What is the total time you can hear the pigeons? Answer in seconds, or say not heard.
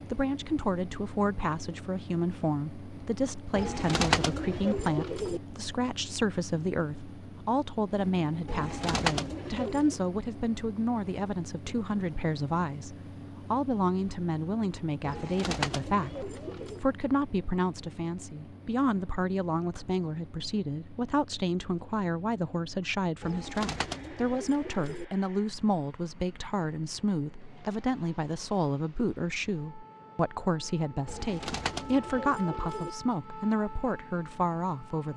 9 s.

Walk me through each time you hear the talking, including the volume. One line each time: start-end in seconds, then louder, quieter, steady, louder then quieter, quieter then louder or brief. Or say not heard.
0.1-35.1 steady.